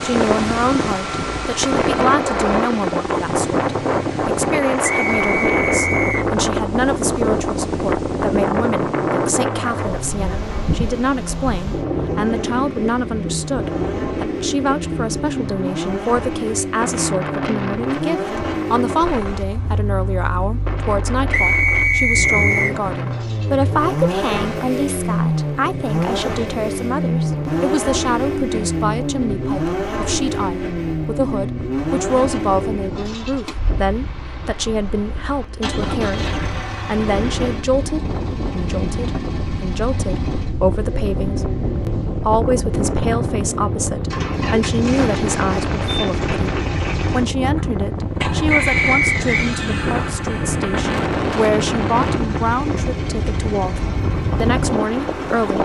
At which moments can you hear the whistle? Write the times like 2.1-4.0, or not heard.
4.8-6.2, 21.3-22.8, 48.5-49.5.